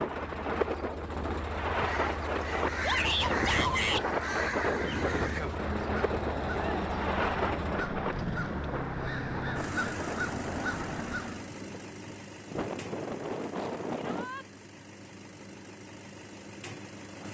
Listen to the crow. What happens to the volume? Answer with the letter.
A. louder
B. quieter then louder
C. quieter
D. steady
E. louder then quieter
D.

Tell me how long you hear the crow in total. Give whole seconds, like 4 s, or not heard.
10 s.